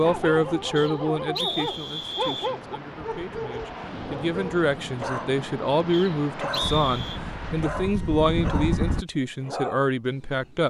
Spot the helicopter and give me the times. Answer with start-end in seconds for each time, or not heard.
6.6-9.1.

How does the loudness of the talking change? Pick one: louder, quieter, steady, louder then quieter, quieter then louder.
quieter then louder.